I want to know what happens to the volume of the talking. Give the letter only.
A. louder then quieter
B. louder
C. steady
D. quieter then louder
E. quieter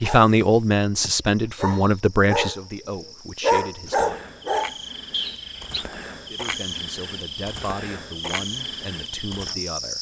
E.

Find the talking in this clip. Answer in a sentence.
The talking can be heard from 0.0 to 4.2 s and from 6.3 to 9.9 s.